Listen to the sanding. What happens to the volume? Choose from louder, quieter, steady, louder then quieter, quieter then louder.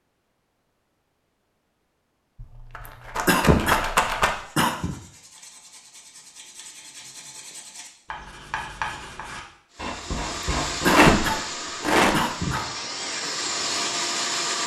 louder.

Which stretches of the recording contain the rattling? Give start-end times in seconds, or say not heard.
2.4-4.3, 10.8-12.2.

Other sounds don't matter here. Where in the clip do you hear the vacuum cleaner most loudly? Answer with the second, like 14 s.
14 s.